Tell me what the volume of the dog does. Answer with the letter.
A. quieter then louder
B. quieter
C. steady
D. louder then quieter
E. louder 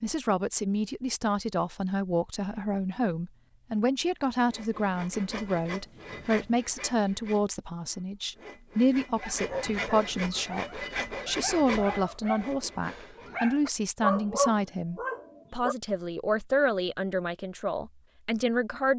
E.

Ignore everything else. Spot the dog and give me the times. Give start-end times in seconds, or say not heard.
9.2-15.8.